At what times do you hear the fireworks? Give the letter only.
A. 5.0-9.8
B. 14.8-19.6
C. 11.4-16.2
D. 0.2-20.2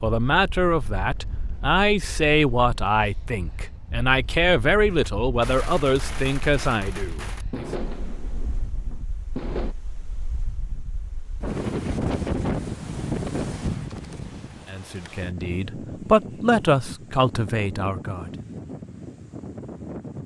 A.